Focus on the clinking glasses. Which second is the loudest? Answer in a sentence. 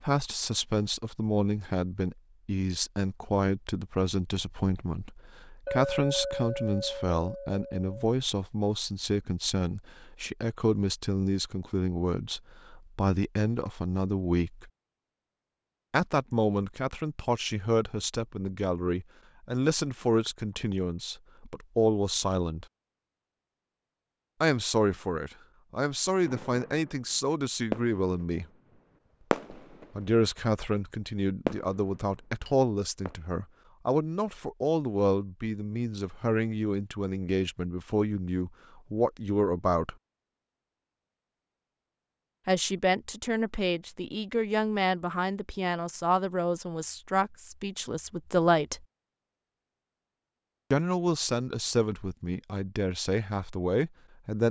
The loudest moment of the clinking glasses is at 6 seconds.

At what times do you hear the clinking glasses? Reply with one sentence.
You can hear the clinking glasses from 5.7 to 8.0 s.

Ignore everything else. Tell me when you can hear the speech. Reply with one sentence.
The speech can be heard from 0.0 to 14.7 s, from 15.9 to 22.6 s, from 24.4 to 28.4 s, from 29.9 to 40.0 s, from 42.5 to 48.9 s and from 50.7 to 54.4 s.